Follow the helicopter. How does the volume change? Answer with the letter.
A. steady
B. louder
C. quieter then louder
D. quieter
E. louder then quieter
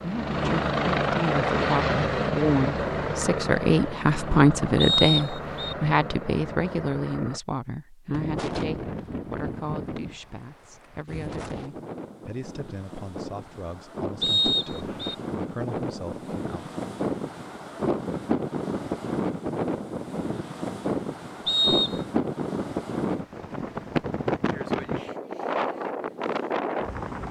D.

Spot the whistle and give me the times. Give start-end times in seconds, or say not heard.
4.8-5.8, 14.2-15.2, 21.4-22.0.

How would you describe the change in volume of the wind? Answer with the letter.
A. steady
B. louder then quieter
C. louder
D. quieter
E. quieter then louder
C.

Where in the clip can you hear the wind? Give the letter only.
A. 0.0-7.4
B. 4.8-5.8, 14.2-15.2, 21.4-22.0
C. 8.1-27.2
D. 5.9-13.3
C.